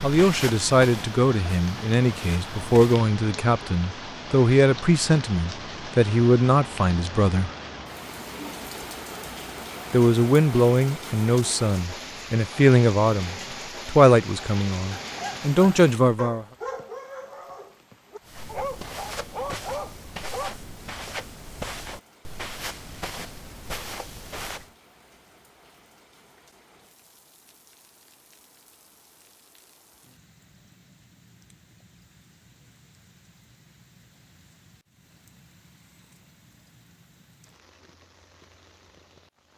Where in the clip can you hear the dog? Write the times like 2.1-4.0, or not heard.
15.0-20.5.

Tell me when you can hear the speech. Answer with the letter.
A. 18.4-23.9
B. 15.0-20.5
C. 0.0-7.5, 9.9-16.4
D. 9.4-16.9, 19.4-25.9
C.